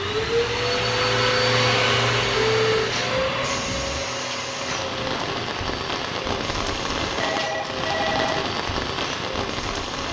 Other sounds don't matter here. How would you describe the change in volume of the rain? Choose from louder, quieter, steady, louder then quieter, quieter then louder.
louder.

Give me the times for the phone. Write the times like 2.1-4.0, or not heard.
2.5-3.0, 7.2-8.5.